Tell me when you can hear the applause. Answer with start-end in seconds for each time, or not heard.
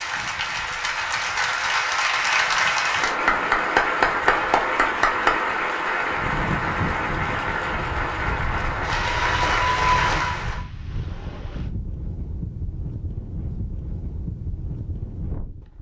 0.0-10.6.